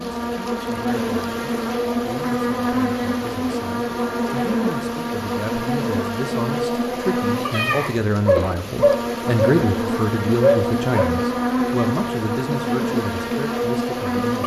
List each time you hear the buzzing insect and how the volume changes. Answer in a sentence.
The buzzing insect can be heard from 0.0 to 14.4 s, at a steady volume.